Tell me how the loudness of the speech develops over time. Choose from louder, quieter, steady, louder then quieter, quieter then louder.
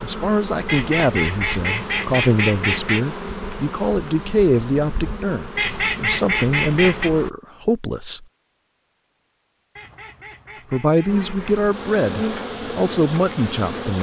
steady.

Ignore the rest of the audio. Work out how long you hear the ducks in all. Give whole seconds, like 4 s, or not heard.
6 s.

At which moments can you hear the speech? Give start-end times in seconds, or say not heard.
0.0-8.2, 10.7-13.9.